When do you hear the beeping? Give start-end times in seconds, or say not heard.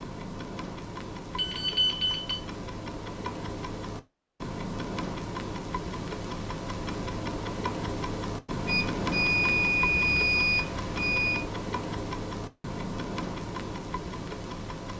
1.4-2.4, 8.7-11.4.